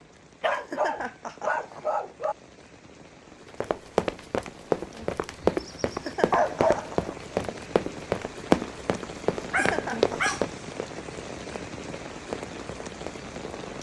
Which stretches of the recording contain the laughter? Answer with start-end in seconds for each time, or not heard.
0.5-2.2, 5.8-7.6, 9.5-10.3.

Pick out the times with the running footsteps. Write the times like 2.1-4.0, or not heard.
3.6-13.6.